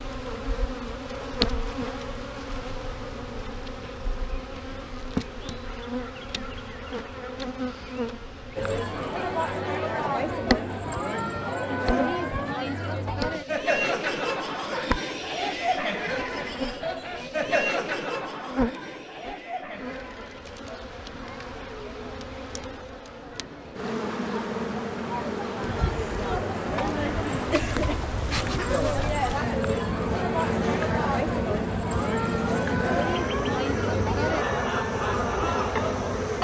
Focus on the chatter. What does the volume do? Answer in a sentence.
The volume of the chatter goes down, then up.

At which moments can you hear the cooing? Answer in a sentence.
The cooing can't be heard in this clip.